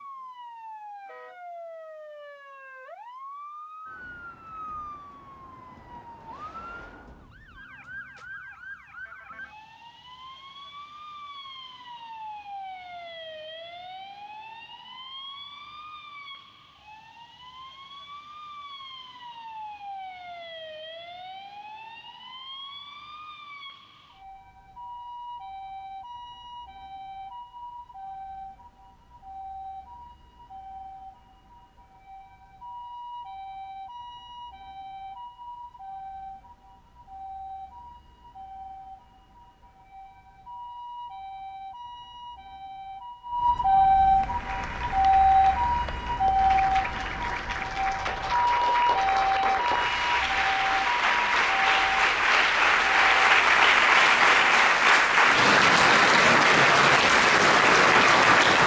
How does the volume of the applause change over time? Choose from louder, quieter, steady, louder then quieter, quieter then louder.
louder.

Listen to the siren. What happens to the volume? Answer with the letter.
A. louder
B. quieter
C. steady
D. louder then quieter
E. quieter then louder
A.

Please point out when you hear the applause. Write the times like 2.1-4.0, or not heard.
44.1-58.6.